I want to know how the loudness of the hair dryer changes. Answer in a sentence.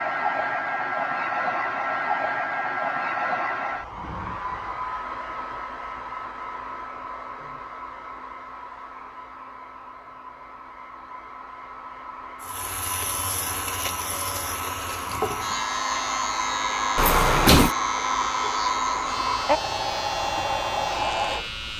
The volume of the hair dryer goes down, then up.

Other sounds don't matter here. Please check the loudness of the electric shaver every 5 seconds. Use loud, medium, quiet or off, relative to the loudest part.
off, off, loud, loud, loud.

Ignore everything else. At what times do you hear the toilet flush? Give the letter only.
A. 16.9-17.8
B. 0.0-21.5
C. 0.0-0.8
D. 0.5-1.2
A.